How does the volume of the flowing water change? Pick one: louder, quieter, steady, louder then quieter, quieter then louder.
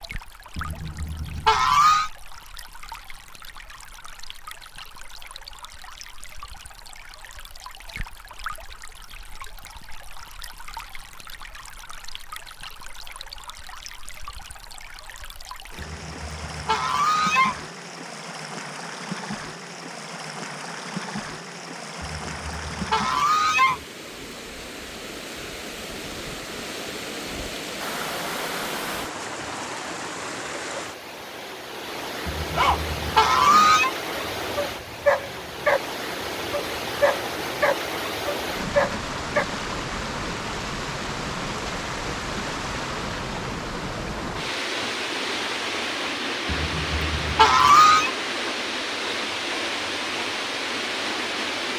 louder.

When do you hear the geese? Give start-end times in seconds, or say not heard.
0.6-2.1, 15.8-17.6, 22.0-23.9, 32.2-33.9, 46.5-48.1.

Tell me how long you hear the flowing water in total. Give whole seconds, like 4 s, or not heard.
52 s.